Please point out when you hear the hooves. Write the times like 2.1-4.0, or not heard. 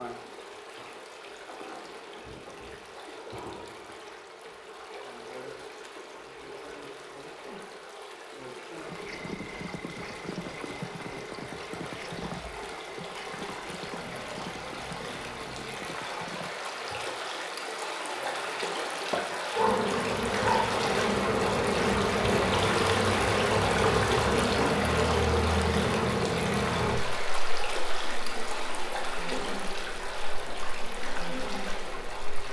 8.8-17.2.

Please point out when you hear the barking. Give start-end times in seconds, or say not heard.
19.6-20.6.